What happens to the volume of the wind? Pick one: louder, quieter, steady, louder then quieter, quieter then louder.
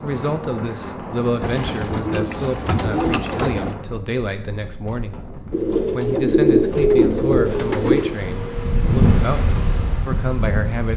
quieter then louder.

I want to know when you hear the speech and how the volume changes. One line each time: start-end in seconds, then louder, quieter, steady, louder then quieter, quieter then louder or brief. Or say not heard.
0.0-10.9 steady.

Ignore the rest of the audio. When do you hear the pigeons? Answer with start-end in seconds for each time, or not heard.
1.4-3.8, 5.5-8.2.